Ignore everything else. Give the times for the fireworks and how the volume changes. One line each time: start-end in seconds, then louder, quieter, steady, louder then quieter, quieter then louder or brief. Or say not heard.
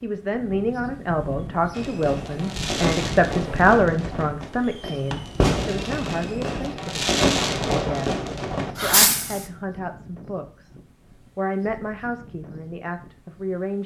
1.8-9.4 quieter then louder.